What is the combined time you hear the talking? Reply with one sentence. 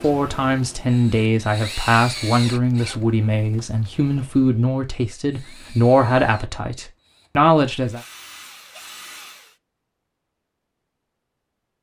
You can hear the talking for 8 seconds altogether.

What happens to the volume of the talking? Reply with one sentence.
The volume of the talking stays about the same.